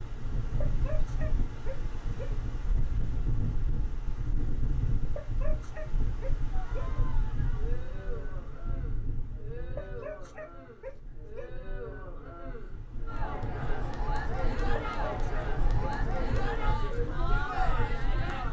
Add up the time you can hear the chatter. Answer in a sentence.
The chatter can be heard for 12 seconds in total.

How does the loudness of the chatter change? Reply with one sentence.
The volume of the chatter goes up.